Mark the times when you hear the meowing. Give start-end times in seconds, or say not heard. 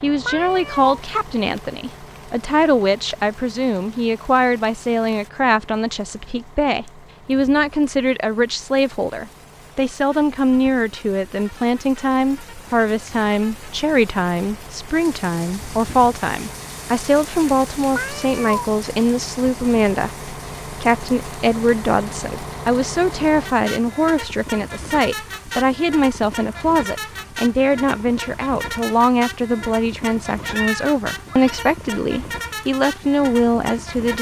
0.2-1.0, 17.9-18.7, 30.4-31.8.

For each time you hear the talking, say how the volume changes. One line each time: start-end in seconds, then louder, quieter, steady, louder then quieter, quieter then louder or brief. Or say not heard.
0.0-34.1 steady.